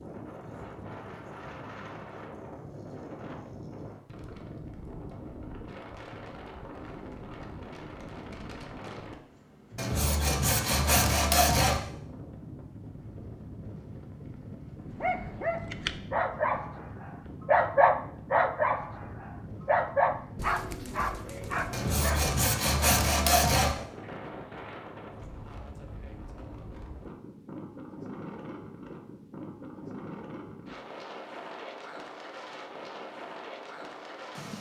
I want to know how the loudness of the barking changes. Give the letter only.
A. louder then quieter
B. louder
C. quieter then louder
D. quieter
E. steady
A.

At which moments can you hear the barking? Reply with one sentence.
The barking can be heard from 14.9 to 22.4 s.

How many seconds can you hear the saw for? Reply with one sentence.
You can hear the saw for 4 seconds altogether.